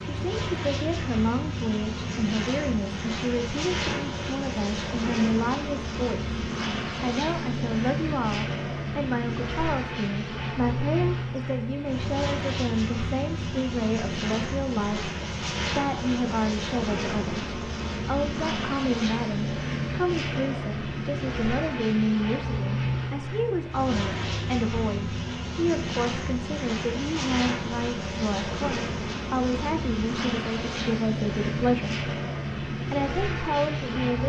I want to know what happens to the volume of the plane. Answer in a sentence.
The volume of the plane stays about the same.